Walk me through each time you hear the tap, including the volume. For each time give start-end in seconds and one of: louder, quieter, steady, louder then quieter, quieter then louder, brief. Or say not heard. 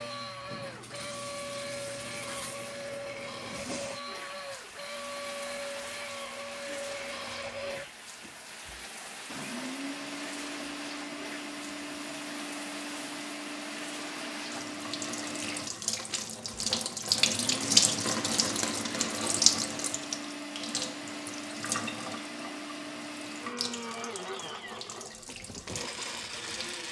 0.0-26.8 louder then quieter.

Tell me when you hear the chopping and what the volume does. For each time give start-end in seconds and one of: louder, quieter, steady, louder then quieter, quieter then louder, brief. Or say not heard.
not heard.